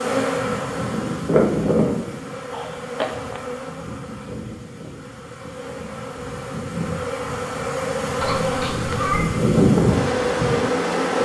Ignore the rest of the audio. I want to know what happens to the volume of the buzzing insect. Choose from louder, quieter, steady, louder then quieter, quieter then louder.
quieter then louder.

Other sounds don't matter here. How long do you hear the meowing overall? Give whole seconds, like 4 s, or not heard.
2 s.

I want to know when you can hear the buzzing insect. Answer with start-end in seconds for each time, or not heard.
0.0-11.1.